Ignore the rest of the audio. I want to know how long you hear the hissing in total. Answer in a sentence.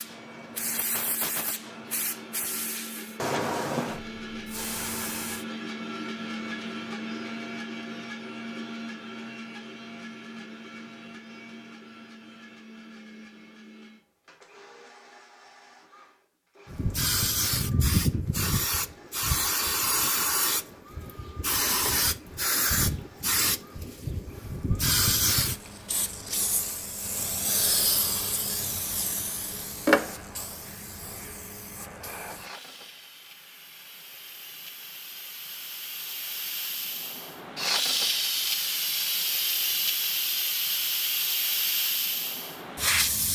You can hear the hissing for 32 seconds altogether.